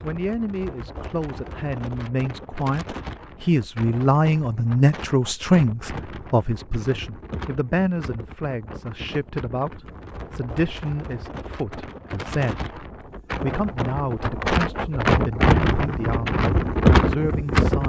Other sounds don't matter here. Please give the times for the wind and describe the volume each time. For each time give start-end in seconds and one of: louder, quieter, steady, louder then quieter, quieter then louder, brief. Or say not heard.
0.0-17.8 louder.